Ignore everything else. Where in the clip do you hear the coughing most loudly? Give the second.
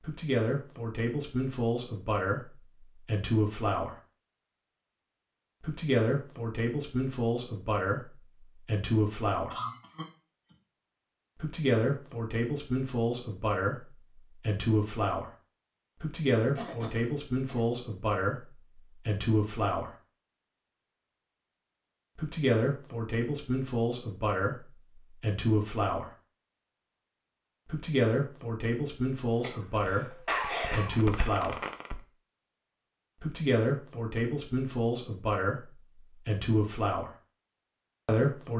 30 s.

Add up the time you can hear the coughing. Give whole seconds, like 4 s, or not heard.
4 s.